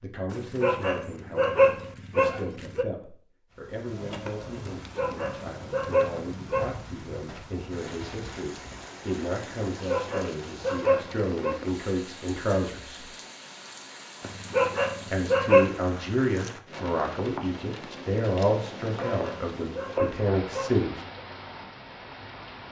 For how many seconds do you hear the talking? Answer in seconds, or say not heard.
19 s.